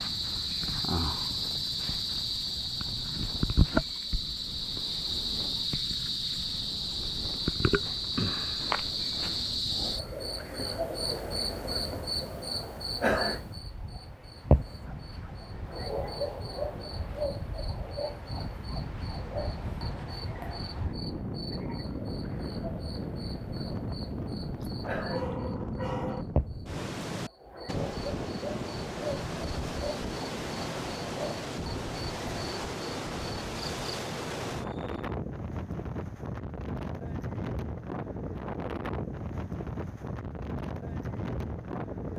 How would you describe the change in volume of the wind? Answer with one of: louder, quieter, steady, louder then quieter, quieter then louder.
louder.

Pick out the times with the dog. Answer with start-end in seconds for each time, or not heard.
24.6-26.2.